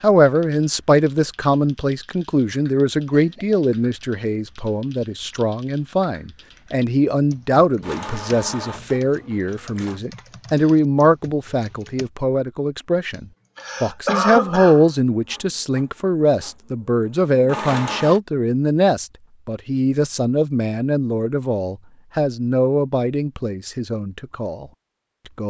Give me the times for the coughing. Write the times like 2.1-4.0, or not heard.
3.0-3.6, 13.6-14.9.